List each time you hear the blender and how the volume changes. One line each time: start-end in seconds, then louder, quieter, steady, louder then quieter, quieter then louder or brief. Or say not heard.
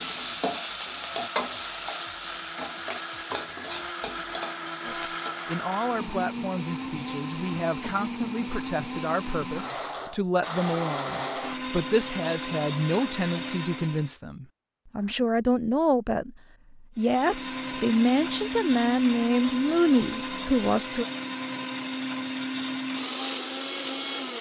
0.0-14.2 louder
16.9-24.3 steady.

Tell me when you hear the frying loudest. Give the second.
1 s.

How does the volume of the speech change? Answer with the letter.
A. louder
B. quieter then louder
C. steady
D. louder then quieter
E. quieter
A.